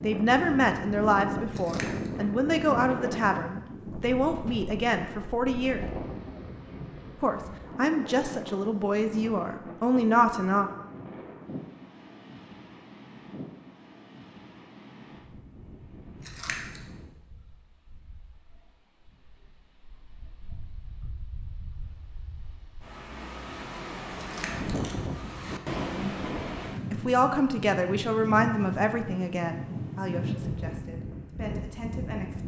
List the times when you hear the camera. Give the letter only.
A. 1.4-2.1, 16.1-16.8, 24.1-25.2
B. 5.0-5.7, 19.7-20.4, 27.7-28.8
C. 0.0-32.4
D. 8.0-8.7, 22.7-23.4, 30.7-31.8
A.